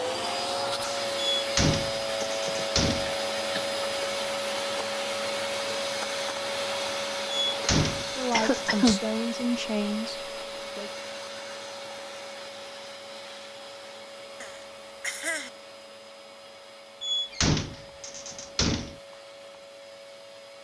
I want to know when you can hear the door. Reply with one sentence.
You can hear the door from 1.4 to 3.1 s, from 7.3 to 8.9 s and from 17.0 to 18.9 s.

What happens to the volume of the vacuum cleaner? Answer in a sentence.
The volume of the vacuum cleaner goes down.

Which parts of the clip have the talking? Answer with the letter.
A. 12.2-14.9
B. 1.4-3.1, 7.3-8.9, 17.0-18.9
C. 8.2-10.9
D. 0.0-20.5
C.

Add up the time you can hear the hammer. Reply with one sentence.
You can't hear the hammer here.